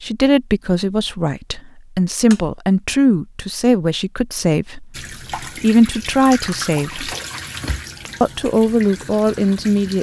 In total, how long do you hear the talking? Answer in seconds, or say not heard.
9 s.